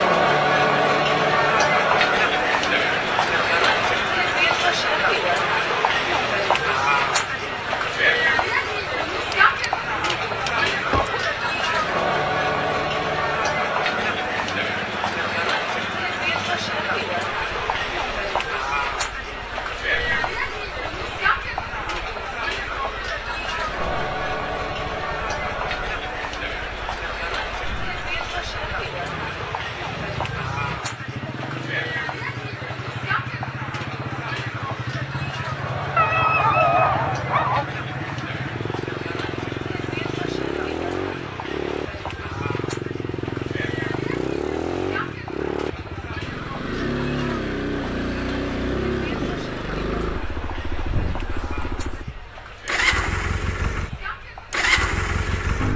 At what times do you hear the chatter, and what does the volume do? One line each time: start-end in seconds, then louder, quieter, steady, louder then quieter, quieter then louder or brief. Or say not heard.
0.0-55.7 quieter.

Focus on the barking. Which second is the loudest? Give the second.
37 s.